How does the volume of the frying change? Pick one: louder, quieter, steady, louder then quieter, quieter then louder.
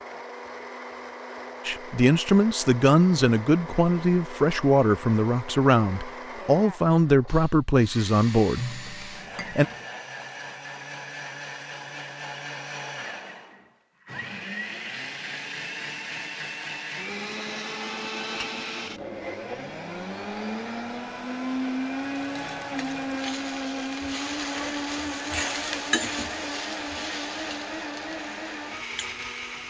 louder then quieter.